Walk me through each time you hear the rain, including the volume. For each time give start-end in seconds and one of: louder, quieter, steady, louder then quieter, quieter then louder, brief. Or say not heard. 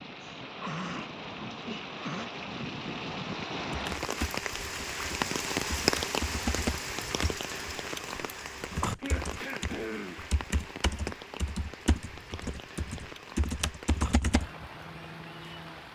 0.0-15.8 louder then quieter.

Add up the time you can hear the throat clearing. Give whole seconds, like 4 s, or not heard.
3 s.